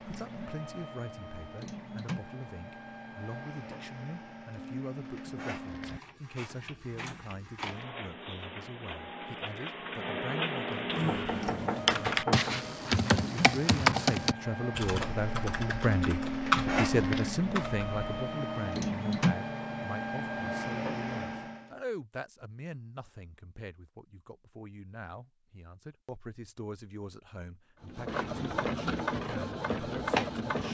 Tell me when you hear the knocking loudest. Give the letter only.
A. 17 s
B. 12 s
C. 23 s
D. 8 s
B.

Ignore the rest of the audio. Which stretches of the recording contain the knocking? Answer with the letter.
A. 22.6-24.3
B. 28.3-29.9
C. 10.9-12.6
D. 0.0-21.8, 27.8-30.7
C.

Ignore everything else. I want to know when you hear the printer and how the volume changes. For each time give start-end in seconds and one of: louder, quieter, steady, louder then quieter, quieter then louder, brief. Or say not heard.
0.0-21.8 louder
27.8-30.7 brief.